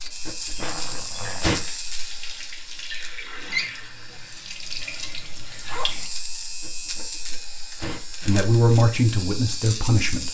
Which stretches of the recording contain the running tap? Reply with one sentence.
The running tap can be heard from 0.0 to 6.1 s.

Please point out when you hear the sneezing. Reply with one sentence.
You can hear the sneezing from 0.2 to 1.6 s and from 6.6 to 8.4 s.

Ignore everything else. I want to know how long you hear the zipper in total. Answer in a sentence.
You can hear the zipper for 2 seconds altogether.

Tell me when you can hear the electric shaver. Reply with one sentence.
The electric shaver can be heard from 0.0 to 10.2 s.